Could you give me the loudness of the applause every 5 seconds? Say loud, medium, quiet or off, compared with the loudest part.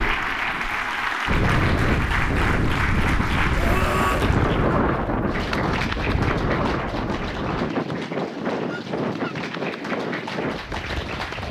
loud, medium, medium.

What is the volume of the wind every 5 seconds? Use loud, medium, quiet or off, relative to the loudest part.
loud, loud, medium.